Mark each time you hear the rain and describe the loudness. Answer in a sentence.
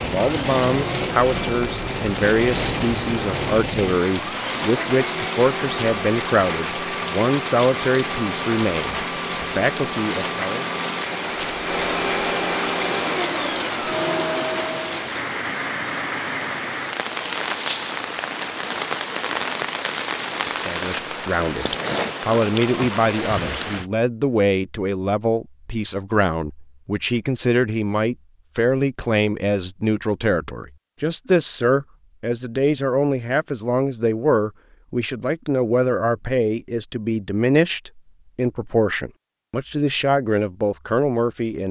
The rain can be heard from 0.0 to 23.9 s, at a steady volume.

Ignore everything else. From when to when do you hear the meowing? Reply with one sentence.
You can't hear the meowing here.